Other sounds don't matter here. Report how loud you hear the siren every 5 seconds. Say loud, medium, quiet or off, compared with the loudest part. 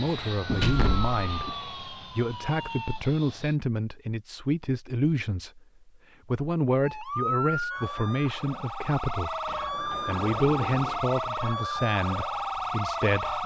medium, loud, loud.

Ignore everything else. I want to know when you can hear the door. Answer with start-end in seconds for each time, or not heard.
0.5-1.6, 9.4-11.0.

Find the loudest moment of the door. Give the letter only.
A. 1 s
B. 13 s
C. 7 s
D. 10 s
A.